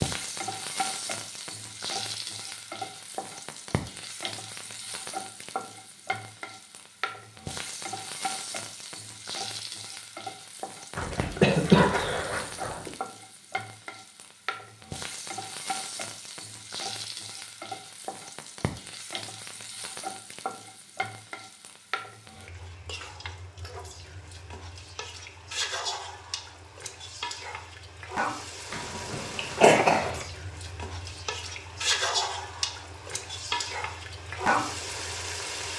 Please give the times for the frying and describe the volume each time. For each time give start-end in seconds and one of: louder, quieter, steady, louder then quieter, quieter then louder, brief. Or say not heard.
0.0-35.7 louder.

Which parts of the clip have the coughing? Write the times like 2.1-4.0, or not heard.
10.9-12.9, 28.7-30.2.